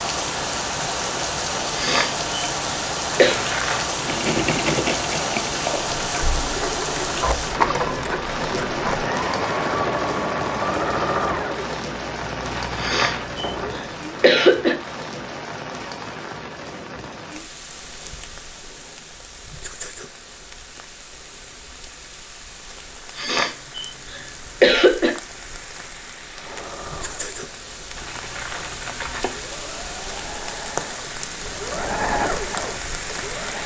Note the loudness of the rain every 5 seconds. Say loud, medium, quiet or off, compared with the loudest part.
loud, loud, medium, medium, quiet, medium, medium.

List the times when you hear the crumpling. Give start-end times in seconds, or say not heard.
3.1-3.9, 12.4-13.4, 27.9-29.4.